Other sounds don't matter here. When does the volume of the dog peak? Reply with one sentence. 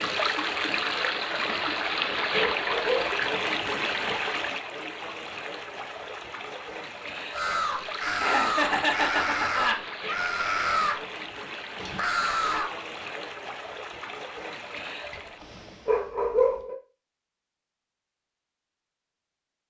The volume of the dog peaks at 16 seconds.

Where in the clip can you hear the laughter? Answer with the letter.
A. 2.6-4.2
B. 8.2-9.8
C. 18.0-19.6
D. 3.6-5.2
B.